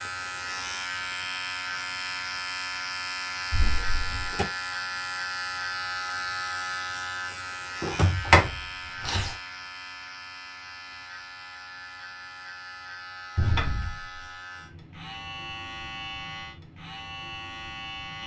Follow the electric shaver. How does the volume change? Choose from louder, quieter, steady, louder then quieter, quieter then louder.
quieter.